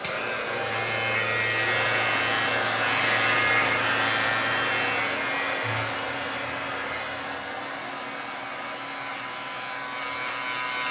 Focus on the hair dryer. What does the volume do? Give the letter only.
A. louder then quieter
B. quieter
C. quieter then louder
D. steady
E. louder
B.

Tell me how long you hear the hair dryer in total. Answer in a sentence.
You can hear the hair dryer for 11 seconds altogether.